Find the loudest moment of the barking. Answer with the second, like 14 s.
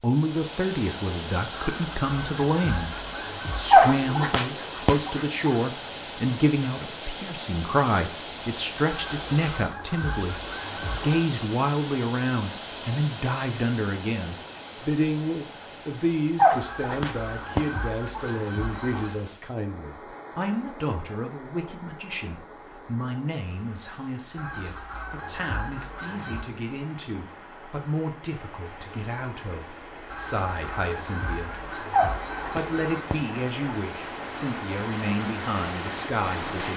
4 s.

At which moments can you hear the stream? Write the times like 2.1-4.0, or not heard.
0.0-36.7.